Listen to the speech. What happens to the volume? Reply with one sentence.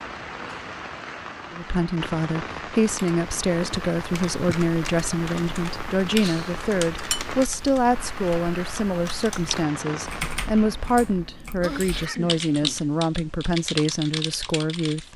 The loudness of the speech stays about the same.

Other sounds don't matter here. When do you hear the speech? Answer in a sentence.
You can hear the speech from 1.5 to 15.1 s.